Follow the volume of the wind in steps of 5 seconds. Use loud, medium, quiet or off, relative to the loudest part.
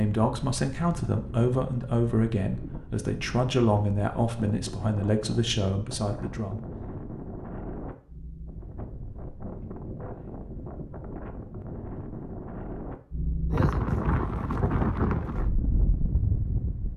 medium, medium, loud, loud.